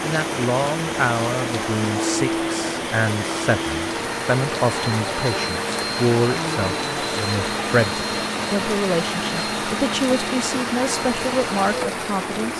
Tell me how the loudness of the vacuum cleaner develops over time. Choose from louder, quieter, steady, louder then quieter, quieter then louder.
steady.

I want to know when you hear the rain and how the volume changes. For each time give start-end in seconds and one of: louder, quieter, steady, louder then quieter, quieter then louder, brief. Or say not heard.
0.0-12.5 steady.